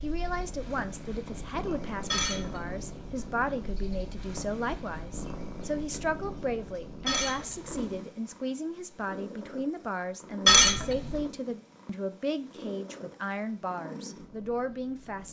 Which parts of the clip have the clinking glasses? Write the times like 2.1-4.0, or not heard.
2.1-3.3, 7.0-7.9, 10.4-11.2.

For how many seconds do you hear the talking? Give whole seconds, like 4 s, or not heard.
15 s.